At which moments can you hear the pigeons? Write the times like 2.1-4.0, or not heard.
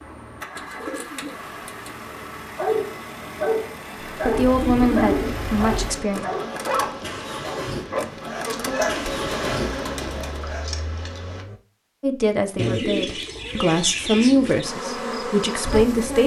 0.6-1.9, 4.3-6.0, 8.8-10.4, 12.6-14.7.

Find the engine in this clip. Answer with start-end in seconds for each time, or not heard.
0.0-11.6.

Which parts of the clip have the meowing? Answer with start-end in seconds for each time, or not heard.
not heard.